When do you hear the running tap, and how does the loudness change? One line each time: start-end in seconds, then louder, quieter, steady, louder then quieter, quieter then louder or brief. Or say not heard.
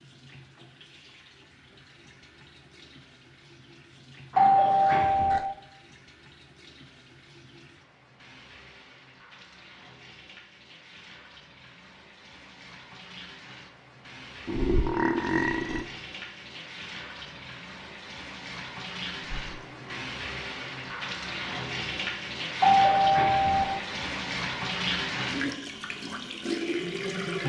0.0-27.4 louder.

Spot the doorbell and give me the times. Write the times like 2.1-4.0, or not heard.
4.3-5.4, 22.6-23.6.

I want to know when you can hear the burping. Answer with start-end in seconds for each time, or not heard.
4.6-5.5, 14.4-15.8, 19.4-20.1.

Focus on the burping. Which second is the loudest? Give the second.
15 s.